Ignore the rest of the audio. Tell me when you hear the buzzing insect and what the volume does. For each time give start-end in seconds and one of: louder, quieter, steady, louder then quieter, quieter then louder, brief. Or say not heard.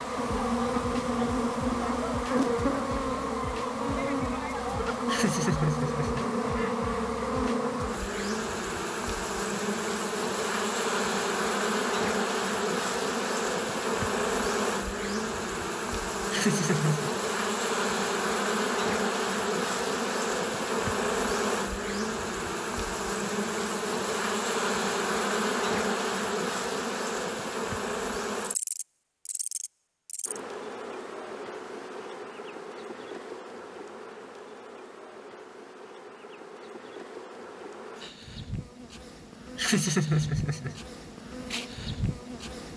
0.0-42.7 quieter.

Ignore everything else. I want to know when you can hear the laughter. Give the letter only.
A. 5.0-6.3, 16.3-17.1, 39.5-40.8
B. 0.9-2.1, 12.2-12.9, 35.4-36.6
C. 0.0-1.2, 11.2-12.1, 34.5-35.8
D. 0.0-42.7
A.